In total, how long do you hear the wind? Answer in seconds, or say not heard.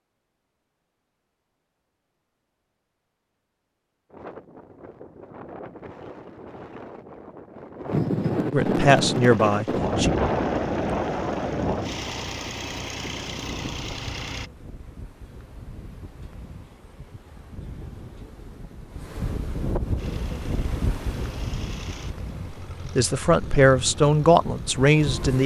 21 s.